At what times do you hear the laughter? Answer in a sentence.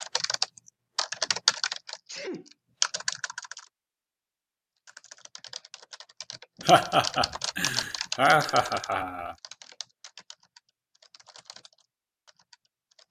You can hear the laughter from 6.7 to 9.3 s.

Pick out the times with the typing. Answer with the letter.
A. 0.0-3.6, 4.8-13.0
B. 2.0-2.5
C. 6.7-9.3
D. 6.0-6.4
A.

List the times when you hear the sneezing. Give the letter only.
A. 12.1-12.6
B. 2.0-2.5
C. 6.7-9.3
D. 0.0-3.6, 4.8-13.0
B.